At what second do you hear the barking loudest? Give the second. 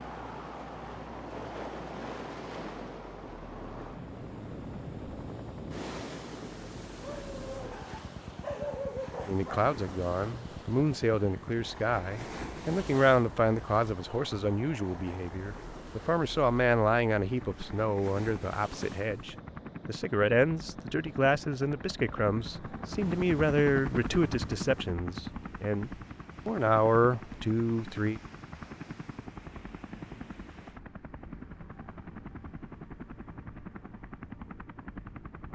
9 s.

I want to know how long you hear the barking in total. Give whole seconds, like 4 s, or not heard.
3 s.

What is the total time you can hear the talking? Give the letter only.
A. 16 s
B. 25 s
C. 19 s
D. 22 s
C.